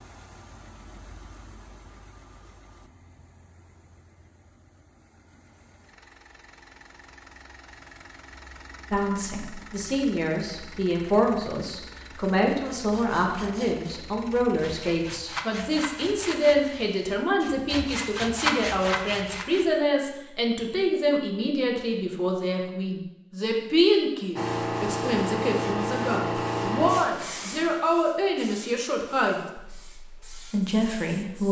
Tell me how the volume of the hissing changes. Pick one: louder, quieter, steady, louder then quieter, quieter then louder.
quieter.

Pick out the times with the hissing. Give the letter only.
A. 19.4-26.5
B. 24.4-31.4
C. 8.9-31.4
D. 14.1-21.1
B.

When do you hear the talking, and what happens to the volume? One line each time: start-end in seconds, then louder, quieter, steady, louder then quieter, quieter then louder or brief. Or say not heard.
8.9-31.4 steady.